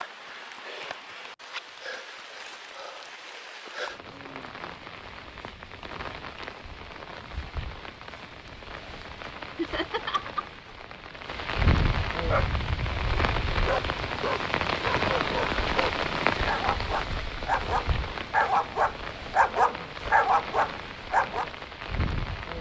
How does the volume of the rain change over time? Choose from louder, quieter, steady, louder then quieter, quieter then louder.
louder then quieter.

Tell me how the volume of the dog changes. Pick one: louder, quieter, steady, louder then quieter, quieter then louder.
louder.